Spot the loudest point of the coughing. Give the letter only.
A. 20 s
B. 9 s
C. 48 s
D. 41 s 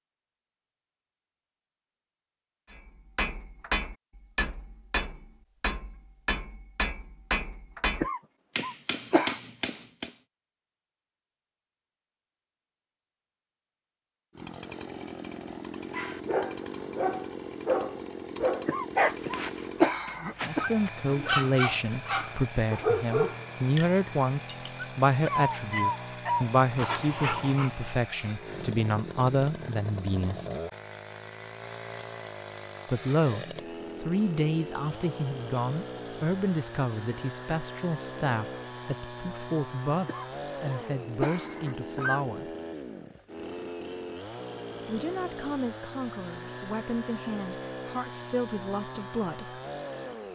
A.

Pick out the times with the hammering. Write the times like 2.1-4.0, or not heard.
2.7-10.2.